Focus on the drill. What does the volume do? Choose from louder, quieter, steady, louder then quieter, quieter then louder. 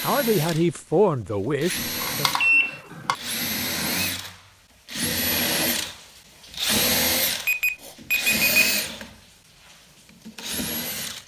louder then quieter.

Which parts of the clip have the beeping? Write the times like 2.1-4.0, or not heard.
2.0-3.1, 7.5-8.5.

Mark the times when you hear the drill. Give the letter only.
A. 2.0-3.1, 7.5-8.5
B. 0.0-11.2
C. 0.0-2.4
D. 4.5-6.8
B.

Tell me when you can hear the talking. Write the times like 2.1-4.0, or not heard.
0.0-2.4.